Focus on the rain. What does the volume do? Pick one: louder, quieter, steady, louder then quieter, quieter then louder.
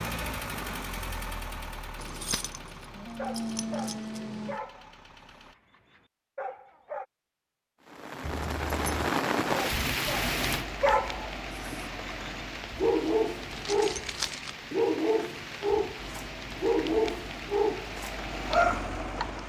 quieter.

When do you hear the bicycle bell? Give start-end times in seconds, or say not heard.
not heard.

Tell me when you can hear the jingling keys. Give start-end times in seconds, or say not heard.
2.0-4.5, 8.2-9.1, 13.5-14.6.